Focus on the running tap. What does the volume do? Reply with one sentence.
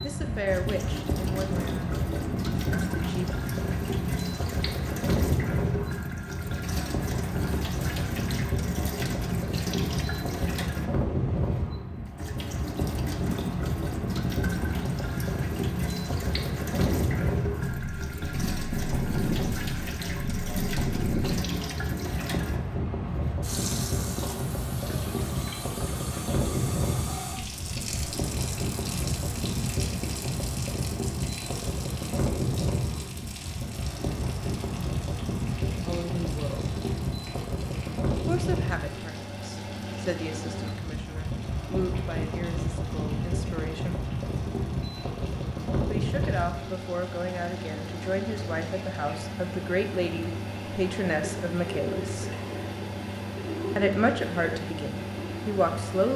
The loudness of the running tap goes down, then up.